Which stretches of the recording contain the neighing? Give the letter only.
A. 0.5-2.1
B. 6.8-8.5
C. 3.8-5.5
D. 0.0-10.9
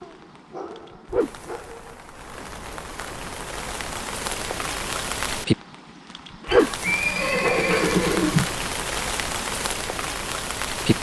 B.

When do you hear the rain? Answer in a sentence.
The rain can be heard from 0.0 to 10.9 s.